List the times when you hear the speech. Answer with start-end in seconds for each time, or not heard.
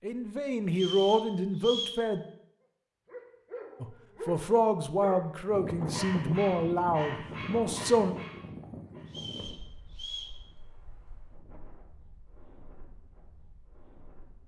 0.0-2.2, 3.8-8.2.